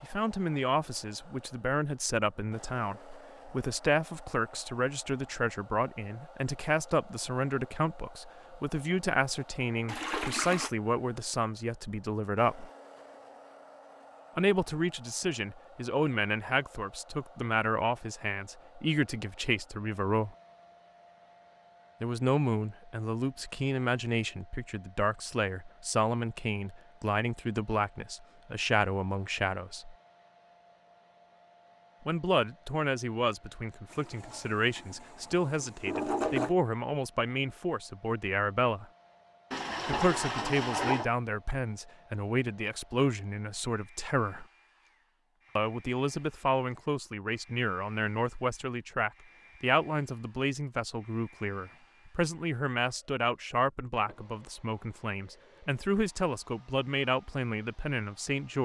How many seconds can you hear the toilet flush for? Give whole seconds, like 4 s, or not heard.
5 s.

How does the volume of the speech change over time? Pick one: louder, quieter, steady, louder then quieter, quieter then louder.
steady.